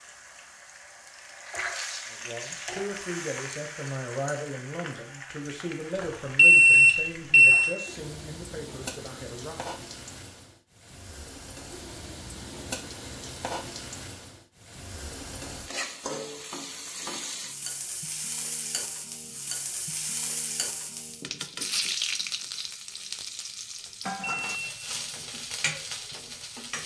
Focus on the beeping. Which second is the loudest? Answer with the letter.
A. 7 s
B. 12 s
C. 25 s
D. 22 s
A.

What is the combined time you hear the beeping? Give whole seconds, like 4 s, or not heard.
2 s.